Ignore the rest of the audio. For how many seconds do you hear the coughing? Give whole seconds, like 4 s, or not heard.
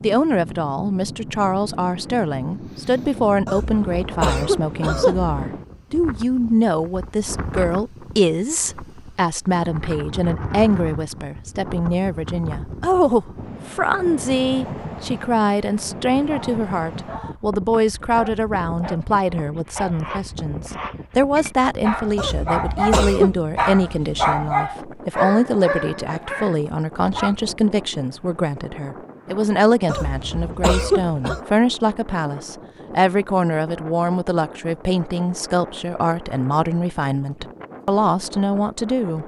5 s.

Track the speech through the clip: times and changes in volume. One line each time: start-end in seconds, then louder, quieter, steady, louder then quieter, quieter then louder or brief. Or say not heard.
0.0-39.2 steady.